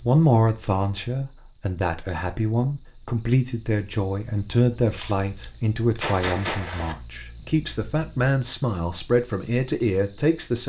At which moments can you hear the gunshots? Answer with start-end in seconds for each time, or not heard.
5.0-7.0.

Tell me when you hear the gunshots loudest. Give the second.
6 s.